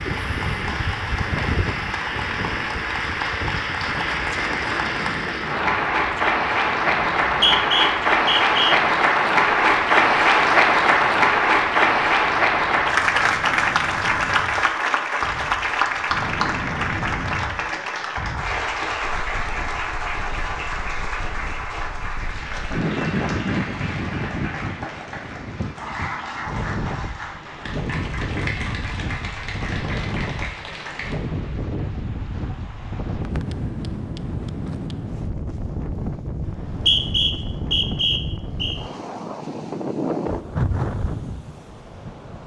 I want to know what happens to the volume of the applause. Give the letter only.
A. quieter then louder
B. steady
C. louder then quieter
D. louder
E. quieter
C.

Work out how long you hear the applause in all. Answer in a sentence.
The applause can be heard for 31 seconds in total.